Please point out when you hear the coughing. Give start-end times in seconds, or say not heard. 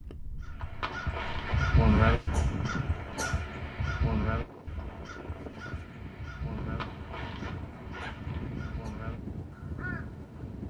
2.2-3.5, 7.8-8.9.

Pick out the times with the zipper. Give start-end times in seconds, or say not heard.
0.6-2.2, 6.6-8.5.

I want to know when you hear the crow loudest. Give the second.
2 s.